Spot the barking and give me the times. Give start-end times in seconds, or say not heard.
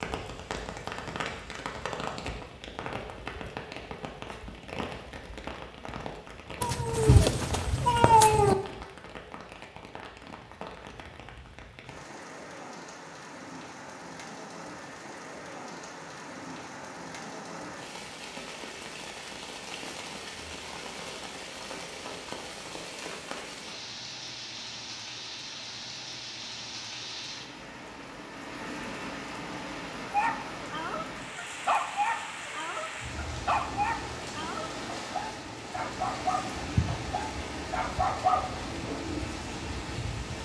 30.1-39.0.